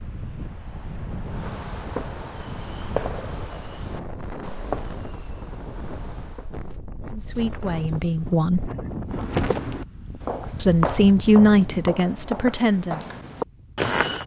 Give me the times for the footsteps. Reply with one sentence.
The footsteps can be heard from 9.1 to 14.2 s.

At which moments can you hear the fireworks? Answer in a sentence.
You can hear the fireworks from 1.2 to 6.5 s.